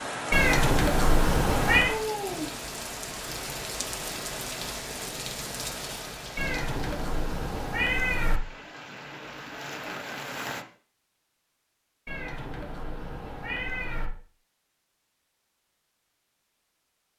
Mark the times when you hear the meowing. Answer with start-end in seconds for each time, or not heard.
0.3-1.9, 6.3-8.4, 12.1-14.1.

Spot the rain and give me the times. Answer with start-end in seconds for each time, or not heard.
0.0-10.7.